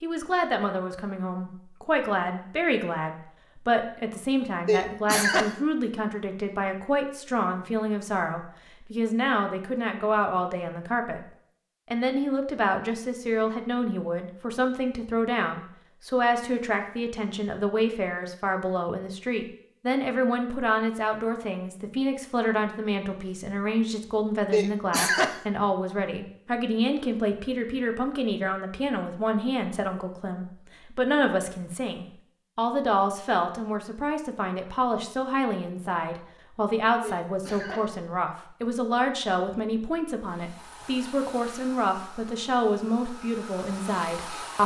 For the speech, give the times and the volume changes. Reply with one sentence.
You can hear the speech from 0.0 to 11.2 s, at a steady volume; and from 11.9 to 44.6 s, at a steady volume.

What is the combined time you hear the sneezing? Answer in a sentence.
The sneezing can be heard for 3 seconds in total.